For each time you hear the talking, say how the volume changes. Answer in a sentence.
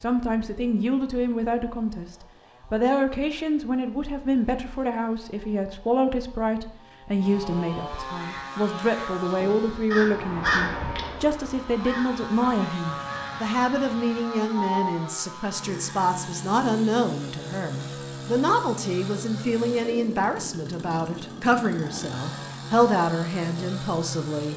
The talking can be heard from 0.0 to 24.5 s, at a steady volume.